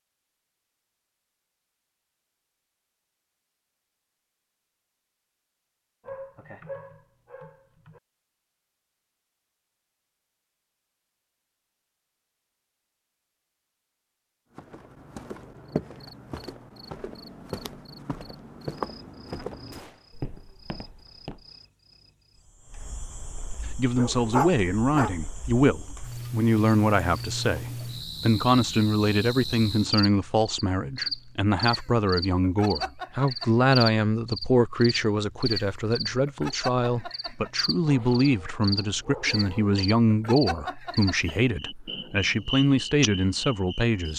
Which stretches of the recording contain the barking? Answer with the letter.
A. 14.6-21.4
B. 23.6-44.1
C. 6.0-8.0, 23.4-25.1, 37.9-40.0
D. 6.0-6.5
C.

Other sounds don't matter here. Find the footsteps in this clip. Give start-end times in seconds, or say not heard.
14.6-21.4.